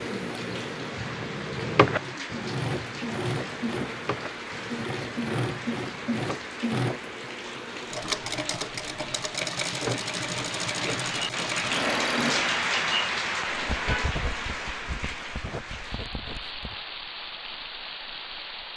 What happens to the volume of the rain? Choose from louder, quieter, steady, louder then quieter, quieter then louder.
louder then quieter.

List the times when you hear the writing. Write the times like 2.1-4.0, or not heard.
0.0-6.5, 13.5-16.8.